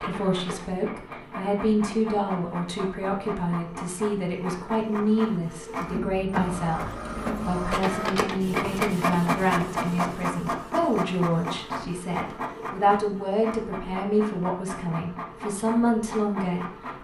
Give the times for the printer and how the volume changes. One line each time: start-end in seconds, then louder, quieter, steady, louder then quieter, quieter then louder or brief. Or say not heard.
0.0-16.9 louder then quieter.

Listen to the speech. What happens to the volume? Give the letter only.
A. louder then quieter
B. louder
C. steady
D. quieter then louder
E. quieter
C.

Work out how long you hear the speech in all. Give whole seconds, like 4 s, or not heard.
17 s.